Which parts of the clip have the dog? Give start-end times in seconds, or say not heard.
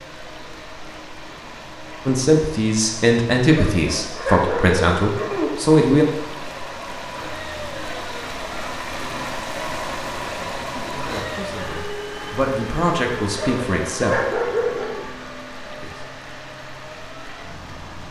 3.5-5.5, 13.3-15.1.